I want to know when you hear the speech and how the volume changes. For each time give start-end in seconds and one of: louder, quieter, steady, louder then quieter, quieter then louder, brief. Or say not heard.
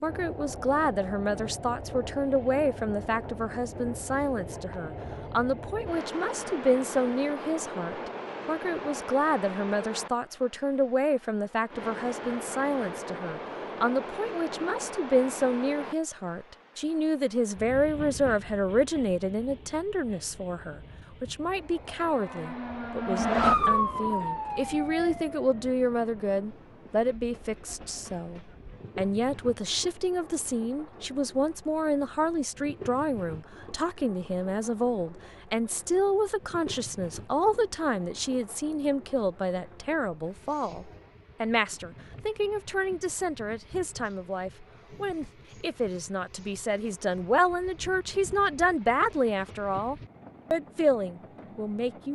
0.0-52.1 steady.